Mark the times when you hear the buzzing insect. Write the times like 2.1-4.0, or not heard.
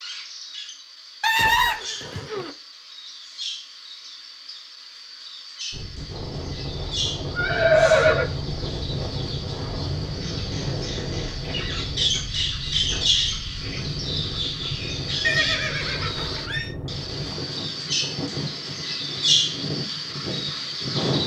not heard.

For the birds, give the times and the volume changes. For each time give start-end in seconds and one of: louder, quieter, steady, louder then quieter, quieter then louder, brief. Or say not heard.
0.0-21.2 louder.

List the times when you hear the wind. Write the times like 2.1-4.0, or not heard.
5.7-21.2.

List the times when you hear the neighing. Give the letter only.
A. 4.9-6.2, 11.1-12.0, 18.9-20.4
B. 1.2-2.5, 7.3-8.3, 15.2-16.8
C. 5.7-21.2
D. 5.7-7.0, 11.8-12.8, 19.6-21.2
B.